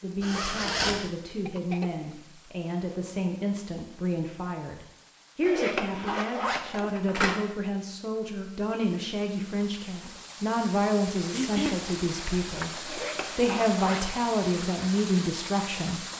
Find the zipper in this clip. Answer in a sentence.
You can hear the zipper from 0.2 to 1.1 s, from 5.4 to 7.5 s and from 12.8 to 14.7 s.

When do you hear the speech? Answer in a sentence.
You can hear the speech from 0.0 to 16.1 s.